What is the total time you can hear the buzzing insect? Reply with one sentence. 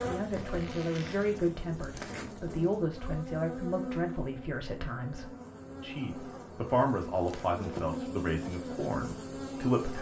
You can hear the buzzing insect for 10 seconds altogether.